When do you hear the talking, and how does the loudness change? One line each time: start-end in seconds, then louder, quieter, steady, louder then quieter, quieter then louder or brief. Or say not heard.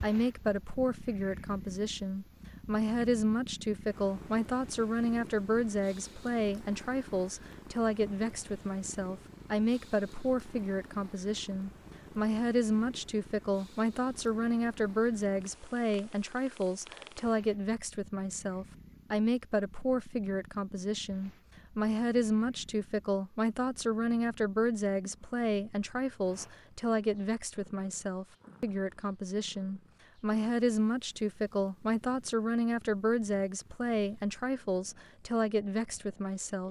0.0-36.6 steady.